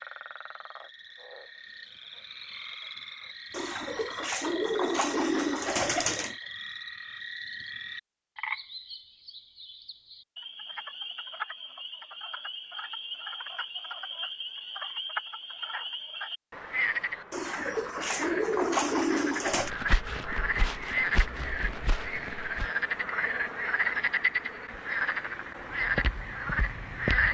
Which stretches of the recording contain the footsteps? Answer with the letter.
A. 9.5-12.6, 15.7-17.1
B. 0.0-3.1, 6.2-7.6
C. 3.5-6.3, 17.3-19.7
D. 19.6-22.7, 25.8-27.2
D.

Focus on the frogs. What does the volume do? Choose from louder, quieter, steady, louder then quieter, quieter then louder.
louder.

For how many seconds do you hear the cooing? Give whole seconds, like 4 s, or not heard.
5 s.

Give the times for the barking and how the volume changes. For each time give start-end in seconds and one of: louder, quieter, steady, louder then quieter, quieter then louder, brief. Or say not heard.
not heard.